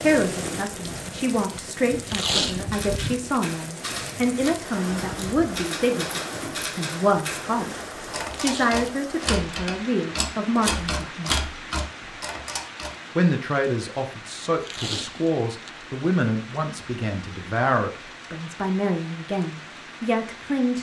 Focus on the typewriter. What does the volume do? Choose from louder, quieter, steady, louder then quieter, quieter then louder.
louder.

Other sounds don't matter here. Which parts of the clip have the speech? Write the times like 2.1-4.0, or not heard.
0.0-7.7, 8.4-11.3, 13.2-20.7.